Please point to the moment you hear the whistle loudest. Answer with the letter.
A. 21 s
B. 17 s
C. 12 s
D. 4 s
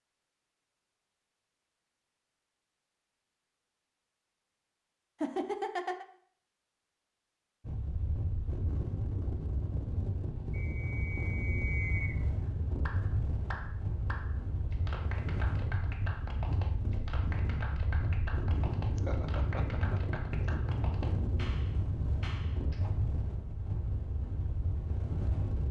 C.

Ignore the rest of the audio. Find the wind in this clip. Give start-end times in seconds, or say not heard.
7.6-25.6.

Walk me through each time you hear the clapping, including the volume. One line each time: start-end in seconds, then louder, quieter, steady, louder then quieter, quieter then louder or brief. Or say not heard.
12.4-22.9 steady.